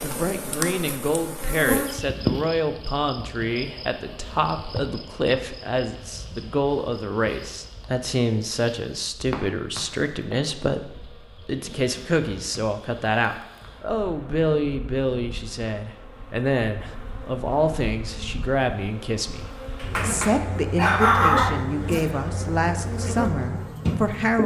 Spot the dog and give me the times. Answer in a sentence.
You can hear the dog from 19.8 to 21.6 s.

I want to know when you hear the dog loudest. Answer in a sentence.
The volume of the dog peaks at 21 seconds.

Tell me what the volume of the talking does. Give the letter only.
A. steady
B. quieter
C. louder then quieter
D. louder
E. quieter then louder
A.